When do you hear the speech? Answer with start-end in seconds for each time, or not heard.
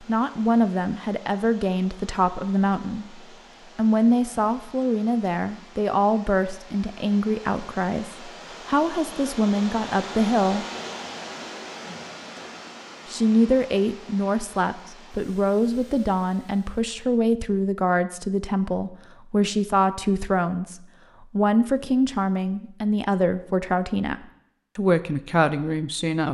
0.0-10.7, 13.1-26.2.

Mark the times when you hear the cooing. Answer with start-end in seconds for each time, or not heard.
not heard.